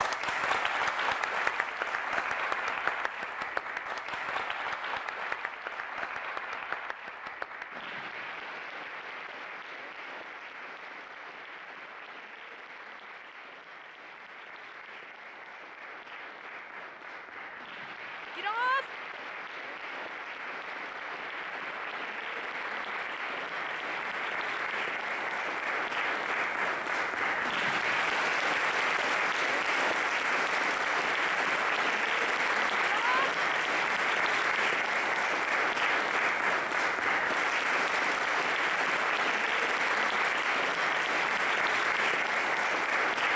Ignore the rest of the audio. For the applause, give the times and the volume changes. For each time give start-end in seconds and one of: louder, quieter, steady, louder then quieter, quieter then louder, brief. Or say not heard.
0.0-43.3 quieter then louder.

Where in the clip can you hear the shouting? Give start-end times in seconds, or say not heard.
18.4-18.9, 32.8-33.3.